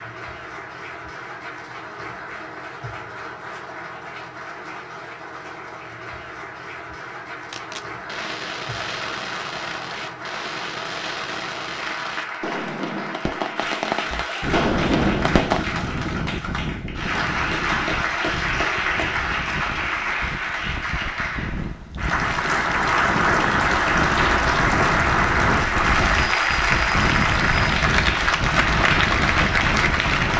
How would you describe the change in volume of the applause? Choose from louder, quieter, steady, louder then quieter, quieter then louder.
louder.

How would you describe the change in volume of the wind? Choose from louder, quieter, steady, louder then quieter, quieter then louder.
quieter then louder.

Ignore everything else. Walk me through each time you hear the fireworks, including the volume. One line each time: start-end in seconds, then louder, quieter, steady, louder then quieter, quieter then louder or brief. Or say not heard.
7.5-15.7 louder.